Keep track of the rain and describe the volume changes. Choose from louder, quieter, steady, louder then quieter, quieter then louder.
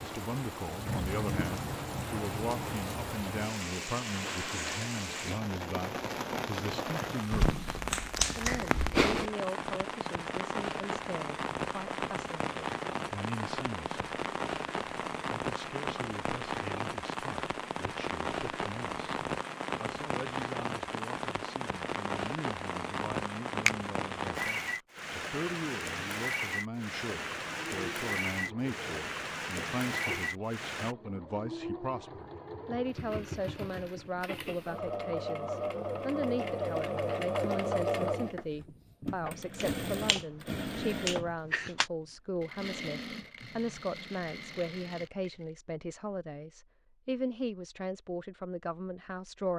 steady.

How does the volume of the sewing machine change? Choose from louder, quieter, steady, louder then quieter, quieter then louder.
louder then quieter.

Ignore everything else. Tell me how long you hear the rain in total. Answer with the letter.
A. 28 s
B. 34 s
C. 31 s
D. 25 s
C.